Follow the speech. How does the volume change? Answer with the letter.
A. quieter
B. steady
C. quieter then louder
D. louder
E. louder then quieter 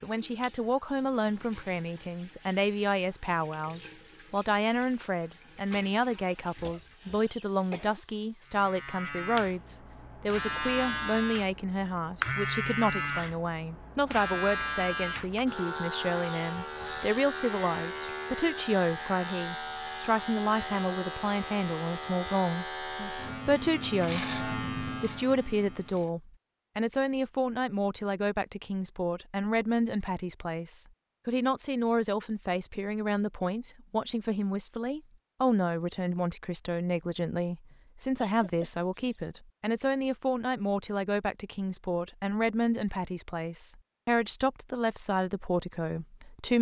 B.